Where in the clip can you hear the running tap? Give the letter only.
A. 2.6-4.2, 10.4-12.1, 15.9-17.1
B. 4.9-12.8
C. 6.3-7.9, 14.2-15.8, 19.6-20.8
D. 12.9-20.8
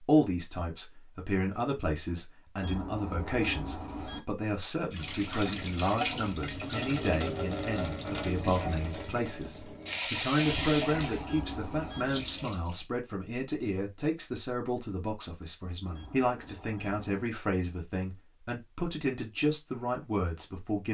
B.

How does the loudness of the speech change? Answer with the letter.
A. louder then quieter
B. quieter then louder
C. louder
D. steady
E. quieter
D.